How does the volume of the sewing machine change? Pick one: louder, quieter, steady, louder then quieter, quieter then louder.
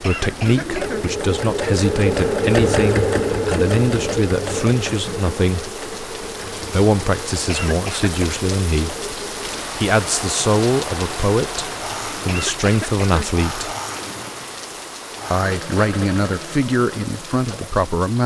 quieter.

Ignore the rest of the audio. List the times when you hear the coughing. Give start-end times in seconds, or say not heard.
0.0-1.1, 7.5-8.4, 12.2-13.3.